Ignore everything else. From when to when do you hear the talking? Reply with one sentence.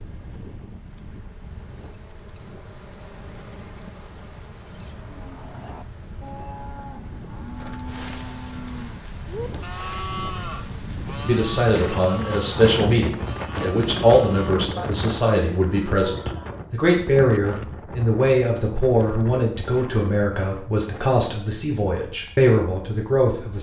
The talking can be heard from 11.2 to 23.5 s.